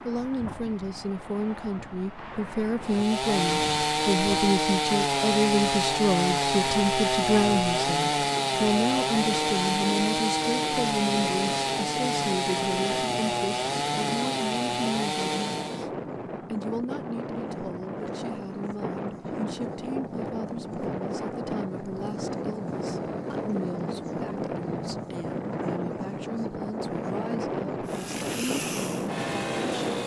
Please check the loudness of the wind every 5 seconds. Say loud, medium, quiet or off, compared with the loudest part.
medium, medium, medium, loud, loud, loud.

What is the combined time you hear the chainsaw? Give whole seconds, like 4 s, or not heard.
15 s.